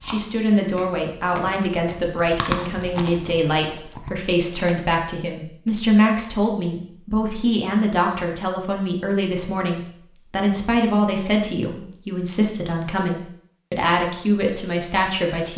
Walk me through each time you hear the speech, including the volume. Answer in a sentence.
You can hear the speech from 0.0 to 15.5 s, at a steady volume.